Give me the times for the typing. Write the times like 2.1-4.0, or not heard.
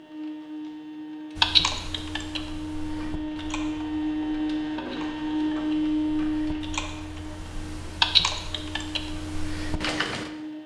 1.4-10.3.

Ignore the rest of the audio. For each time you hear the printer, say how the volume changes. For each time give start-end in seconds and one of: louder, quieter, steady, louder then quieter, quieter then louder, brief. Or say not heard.
0.0-10.6 louder then quieter.